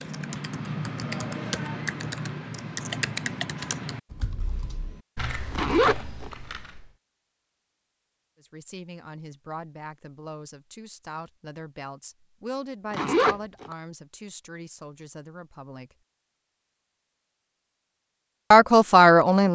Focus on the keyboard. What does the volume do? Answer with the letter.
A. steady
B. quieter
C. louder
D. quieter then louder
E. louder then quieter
B.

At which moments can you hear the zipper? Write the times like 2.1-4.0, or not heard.
5.5-6.3, 12.9-13.8.